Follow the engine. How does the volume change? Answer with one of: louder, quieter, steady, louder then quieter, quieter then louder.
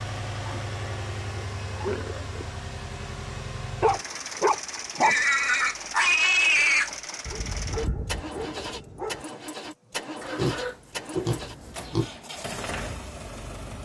steady.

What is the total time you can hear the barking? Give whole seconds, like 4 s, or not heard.
3 s.